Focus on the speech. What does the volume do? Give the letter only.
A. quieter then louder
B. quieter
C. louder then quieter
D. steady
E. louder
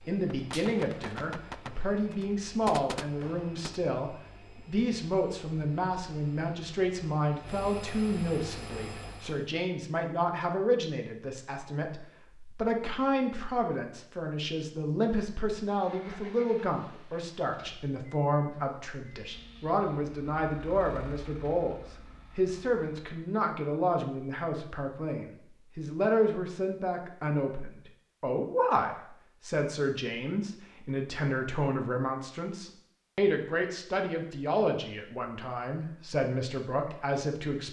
D.